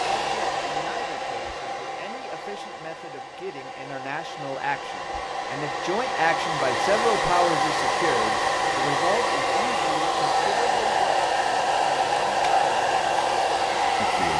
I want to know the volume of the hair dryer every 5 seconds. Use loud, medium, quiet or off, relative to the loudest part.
medium, loud, loud.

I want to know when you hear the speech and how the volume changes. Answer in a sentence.
You can hear the speech from 0.0 to 14.3 s, getting louder then quieter.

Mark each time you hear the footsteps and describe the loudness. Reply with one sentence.
The footsteps can't be heard in this clip.